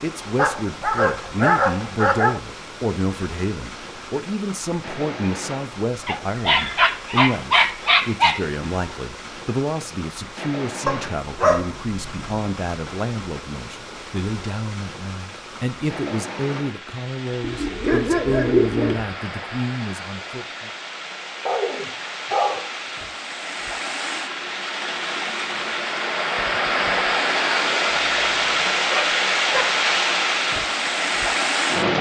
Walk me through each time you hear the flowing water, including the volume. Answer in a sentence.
You can hear the flowing water from 0.0 to 31.9 s, getting louder.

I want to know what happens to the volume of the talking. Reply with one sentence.
The volume of the talking stays about the same.